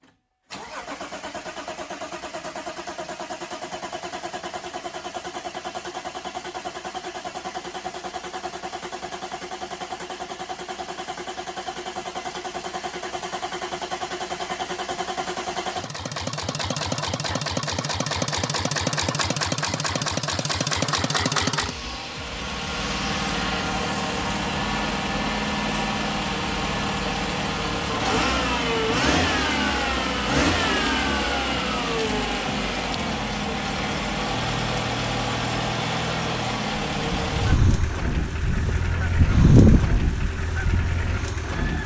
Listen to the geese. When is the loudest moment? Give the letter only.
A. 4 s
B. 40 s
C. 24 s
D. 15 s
B.